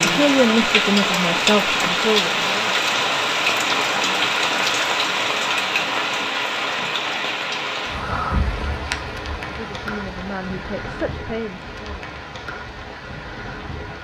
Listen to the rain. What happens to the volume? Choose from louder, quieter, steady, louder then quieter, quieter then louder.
quieter.